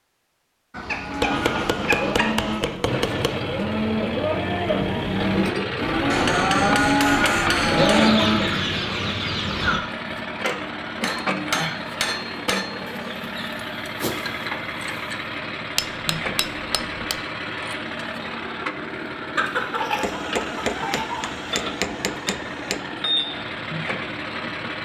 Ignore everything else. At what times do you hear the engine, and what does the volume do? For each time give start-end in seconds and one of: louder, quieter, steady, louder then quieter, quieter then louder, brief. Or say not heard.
2.9-24.8 steady.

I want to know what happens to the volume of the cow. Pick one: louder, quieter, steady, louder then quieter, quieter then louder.
louder.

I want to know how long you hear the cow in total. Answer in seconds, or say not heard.
8 s.